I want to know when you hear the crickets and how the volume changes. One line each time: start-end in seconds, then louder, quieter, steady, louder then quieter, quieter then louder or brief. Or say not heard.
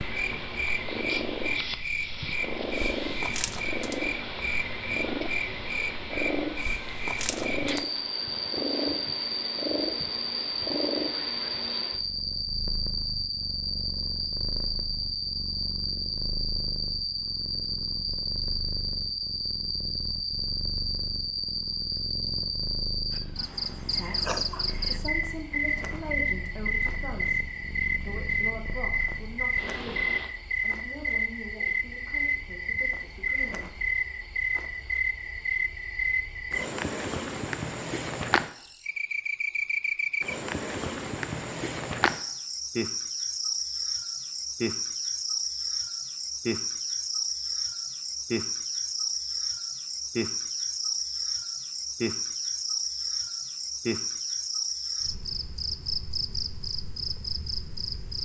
0.0-58.2 steady.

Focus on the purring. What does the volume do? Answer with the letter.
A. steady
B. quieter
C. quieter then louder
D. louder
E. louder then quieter
B.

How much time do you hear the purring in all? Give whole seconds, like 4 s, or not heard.
30 s.